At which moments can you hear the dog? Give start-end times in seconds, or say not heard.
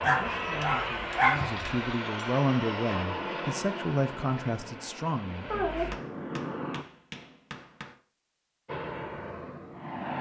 0.0-1.6.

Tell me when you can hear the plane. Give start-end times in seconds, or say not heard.
0.0-6.8, 8.7-10.1.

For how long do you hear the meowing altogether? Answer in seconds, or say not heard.
2 s.